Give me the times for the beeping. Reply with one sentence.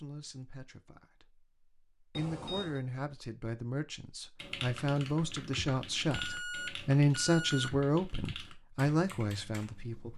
You can hear the beeping from 2.1 to 2.8 s and from 6.1 to 7.7 s.